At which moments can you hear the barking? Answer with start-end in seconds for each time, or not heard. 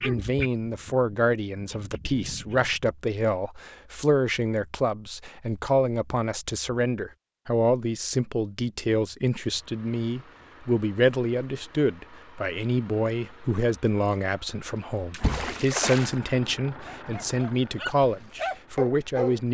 0.0-2.9, 16.9-19.4.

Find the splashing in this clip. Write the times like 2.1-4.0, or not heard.
15.1-16.1.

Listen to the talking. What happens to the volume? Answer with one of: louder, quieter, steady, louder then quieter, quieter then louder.
steady.